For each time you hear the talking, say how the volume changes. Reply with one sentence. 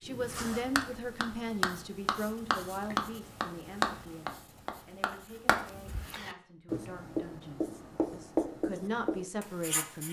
The talking can be heard from 0.0 to 10.0 s, getting quieter then louder.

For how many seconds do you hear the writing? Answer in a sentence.
You can hear the writing for 10 seconds altogether.